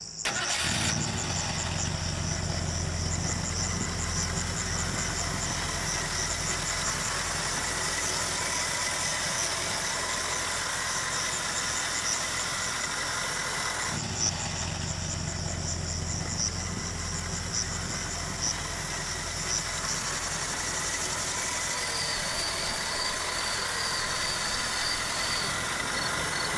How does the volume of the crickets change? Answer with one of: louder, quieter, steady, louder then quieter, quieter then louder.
steady.